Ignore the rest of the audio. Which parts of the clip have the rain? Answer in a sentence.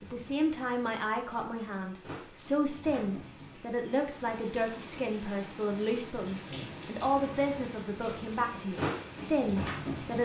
The rain can be heard from 0.0 to 10.2 s.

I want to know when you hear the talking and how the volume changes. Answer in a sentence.
You can hear the talking from 0.0 to 10.2 s, at a steady volume.